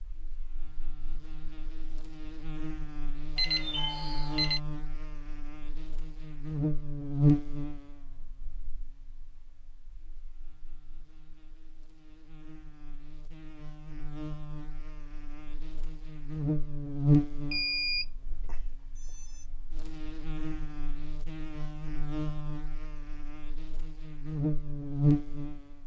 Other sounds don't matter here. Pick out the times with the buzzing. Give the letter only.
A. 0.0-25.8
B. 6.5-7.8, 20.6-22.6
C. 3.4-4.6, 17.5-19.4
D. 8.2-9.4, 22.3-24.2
A.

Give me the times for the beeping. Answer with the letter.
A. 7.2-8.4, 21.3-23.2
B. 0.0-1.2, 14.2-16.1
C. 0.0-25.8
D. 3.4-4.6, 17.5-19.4
D.